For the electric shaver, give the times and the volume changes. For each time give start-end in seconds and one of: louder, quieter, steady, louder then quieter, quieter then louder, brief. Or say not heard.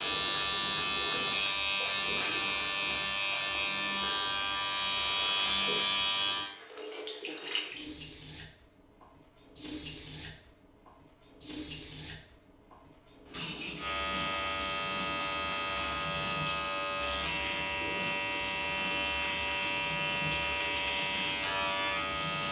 0.0-6.5 steady
13.8-22.4 steady.